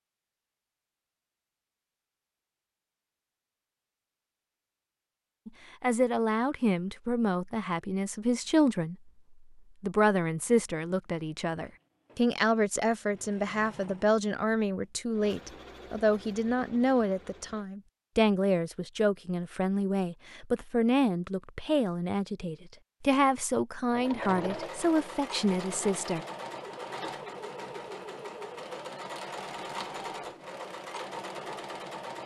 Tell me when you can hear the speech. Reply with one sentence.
You can hear the speech from 5.5 to 9.1 s and from 9.8 to 26.2 s.